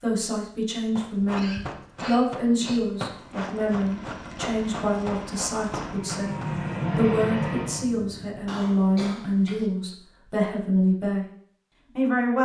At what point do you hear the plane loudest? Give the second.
7 s.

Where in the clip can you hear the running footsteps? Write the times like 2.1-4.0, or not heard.
0.9-6.5.